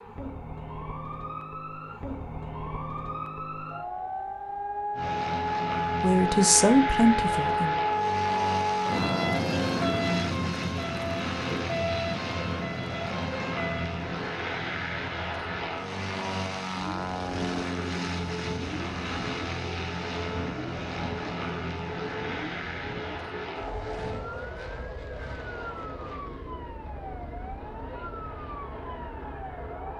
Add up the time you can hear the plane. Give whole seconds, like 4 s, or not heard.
25 s.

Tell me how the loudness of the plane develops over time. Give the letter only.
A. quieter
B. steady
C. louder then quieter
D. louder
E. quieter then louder
A.